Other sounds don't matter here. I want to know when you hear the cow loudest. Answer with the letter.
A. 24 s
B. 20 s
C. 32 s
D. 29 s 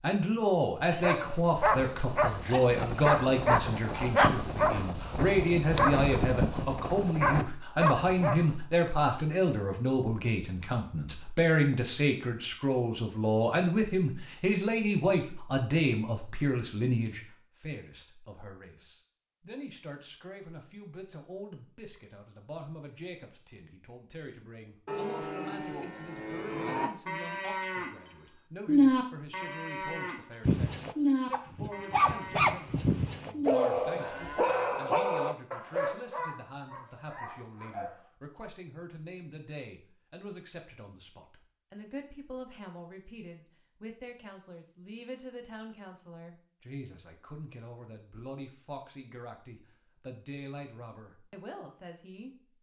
D.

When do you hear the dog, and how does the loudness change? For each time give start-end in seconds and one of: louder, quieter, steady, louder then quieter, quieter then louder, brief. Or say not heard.
0.9-8.6 steady
30.4-38.1 quieter.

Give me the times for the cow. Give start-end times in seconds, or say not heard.
24.9-34.8.